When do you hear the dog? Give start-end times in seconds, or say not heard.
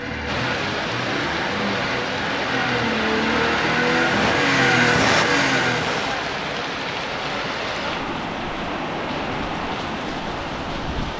not heard.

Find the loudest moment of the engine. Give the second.
5 s.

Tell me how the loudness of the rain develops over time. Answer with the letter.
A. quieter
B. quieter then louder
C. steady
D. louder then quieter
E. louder
C.